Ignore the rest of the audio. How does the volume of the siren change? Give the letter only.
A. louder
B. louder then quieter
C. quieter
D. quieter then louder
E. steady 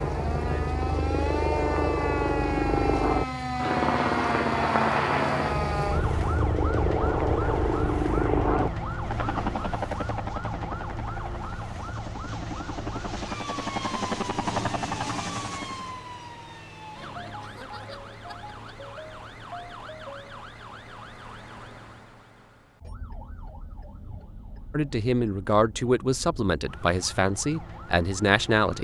C.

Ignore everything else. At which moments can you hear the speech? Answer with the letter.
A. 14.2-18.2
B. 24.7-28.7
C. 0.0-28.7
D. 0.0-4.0
B.